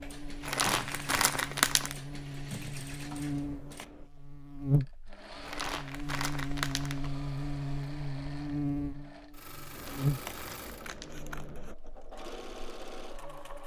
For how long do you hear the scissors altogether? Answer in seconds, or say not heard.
3 s.